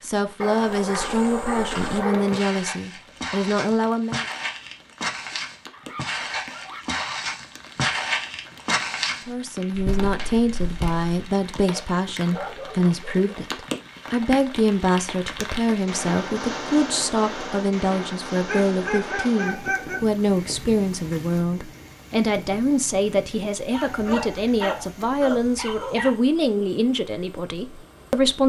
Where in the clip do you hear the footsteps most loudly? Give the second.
8 s.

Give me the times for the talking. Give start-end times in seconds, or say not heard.
0.0-4.2, 9.2-28.4.